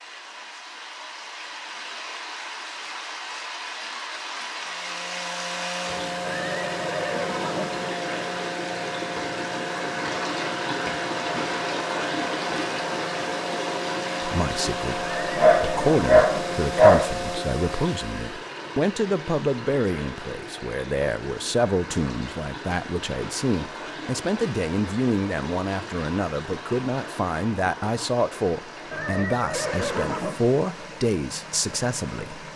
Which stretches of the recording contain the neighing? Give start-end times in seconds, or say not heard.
6.2-7.9, 14.9-16.6, 28.9-30.4.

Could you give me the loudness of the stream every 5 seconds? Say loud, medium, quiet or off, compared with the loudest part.
medium, loud, loud, medium, medium, medium, medium.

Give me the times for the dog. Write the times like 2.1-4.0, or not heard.
15.3-17.1.